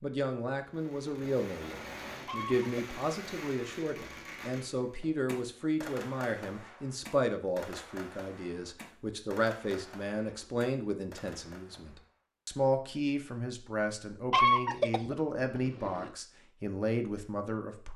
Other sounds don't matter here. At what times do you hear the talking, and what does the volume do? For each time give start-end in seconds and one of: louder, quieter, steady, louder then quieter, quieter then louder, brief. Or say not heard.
0.0-17.9 steady.